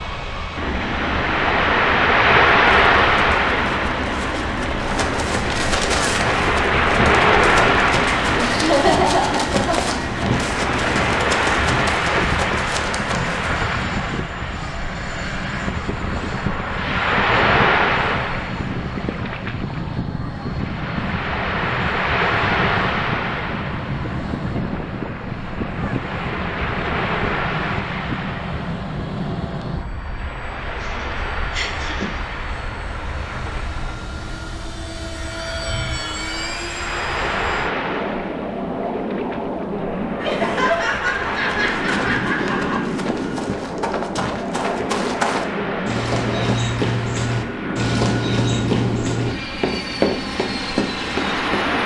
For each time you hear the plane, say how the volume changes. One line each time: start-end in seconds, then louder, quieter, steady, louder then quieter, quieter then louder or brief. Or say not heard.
0.0-51.8 steady.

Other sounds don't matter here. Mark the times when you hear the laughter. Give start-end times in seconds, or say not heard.
8.3-9.9, 30.8-32.2, 40.1-42.8.